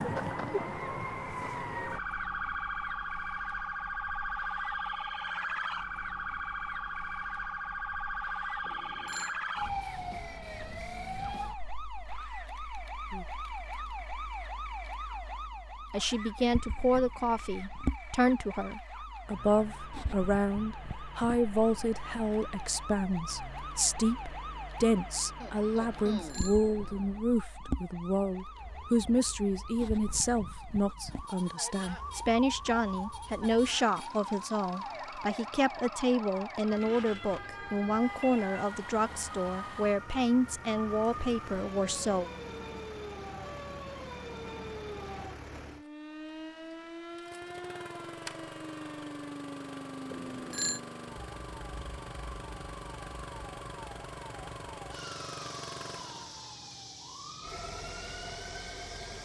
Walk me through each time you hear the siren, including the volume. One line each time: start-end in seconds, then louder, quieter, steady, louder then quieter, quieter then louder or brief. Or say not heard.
0.0-59.2 quieter.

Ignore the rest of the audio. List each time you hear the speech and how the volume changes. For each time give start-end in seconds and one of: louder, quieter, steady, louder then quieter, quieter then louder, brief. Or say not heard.
15.9-42.3 steady.